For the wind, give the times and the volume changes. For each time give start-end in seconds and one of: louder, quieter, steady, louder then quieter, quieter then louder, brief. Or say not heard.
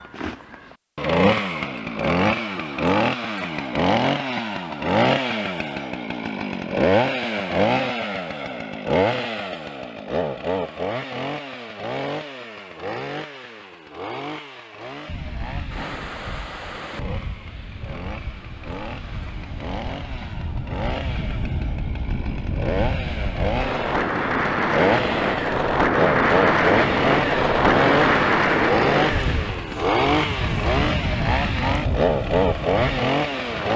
15.1-33.7 louder then quieter.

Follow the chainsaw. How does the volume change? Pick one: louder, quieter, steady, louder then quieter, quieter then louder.
quieter then louder.